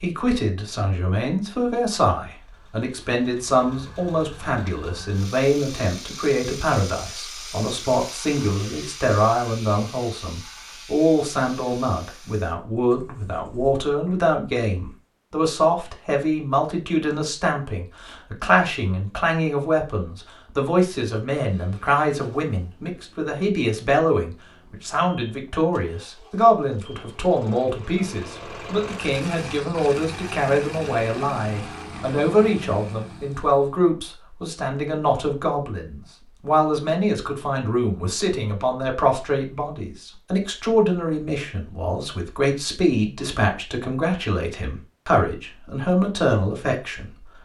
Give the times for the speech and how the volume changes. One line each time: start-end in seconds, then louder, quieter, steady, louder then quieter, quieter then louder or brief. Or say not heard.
0.0-47.1 steady.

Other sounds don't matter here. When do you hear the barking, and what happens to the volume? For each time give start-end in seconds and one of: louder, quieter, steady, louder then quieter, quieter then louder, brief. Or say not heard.
not heard.